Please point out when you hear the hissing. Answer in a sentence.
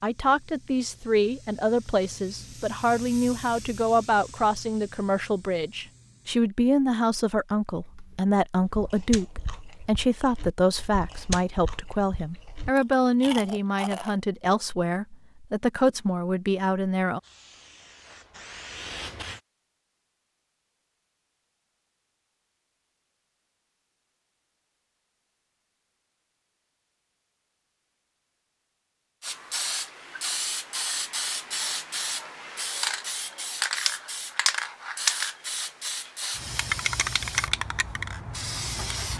The hissing can be heard from 0.0 to 6.4 s, from 17.1 to 19.4 s and from 29.2 to 39.1 s.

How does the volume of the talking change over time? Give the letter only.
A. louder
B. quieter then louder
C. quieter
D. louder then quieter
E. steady
E.